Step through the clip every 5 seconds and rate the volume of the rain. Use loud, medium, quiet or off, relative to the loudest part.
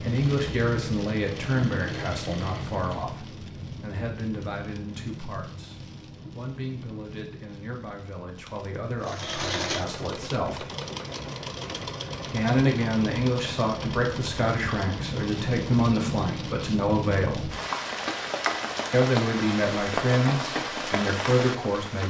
medium, quiet, medium, loud, loud.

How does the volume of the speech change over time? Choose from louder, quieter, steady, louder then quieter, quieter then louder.
quieter then louder.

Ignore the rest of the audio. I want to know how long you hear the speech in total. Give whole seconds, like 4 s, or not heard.
19 s.